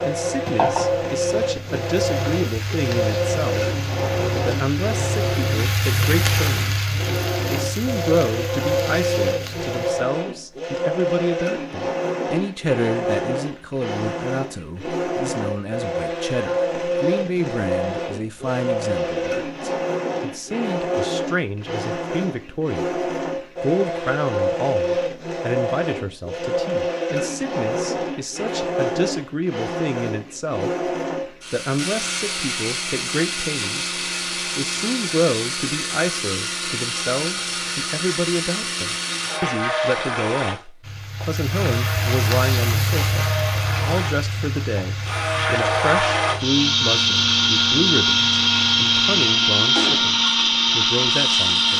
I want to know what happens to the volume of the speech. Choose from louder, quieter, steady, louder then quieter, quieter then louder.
steady.